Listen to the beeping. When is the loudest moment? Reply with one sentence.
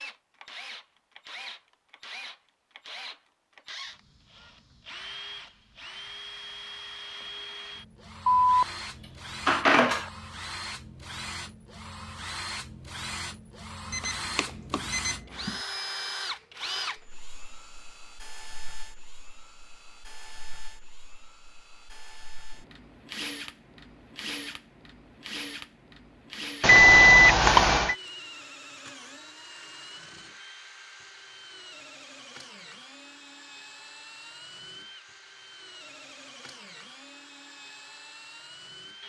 The loudest moment of the beeping is at 27 seconds.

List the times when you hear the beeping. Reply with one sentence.
The beeping can be heard from 8.2 to 10.1 s, from 13.9 to 15.6 s and from 26.6 to 27.9 s.